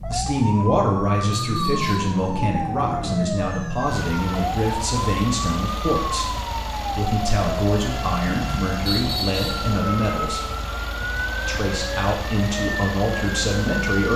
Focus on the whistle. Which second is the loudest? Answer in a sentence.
The loudest moment of the whistle is at 9 seconds.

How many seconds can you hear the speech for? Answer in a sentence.
The speech can be heard for 13 seconds in total.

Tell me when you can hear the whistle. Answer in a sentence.
You can hear the whistle from 1.3 to 2.1 s and from 8.8 to 9.7 s.